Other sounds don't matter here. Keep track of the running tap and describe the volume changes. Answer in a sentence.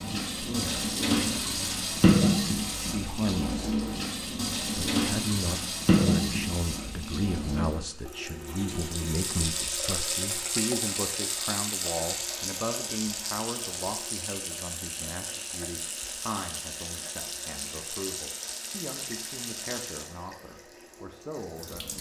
The volume of the running tap goes down.